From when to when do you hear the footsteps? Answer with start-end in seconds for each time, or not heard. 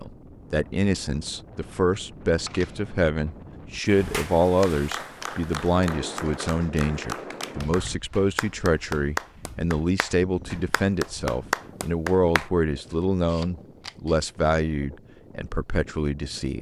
not heard.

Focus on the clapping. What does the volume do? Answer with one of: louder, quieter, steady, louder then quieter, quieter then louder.
louder.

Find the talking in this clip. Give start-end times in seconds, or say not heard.
0.0-16.5.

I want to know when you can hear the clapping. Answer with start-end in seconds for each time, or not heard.
4.1-12.5.